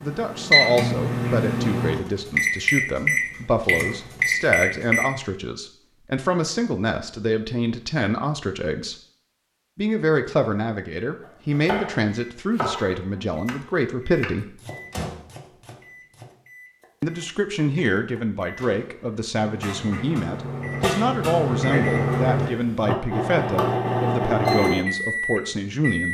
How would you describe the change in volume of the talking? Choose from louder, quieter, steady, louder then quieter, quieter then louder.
steady.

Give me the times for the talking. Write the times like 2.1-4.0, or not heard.
0.0-8.9, 9.8-14.6, 17.0-26.0.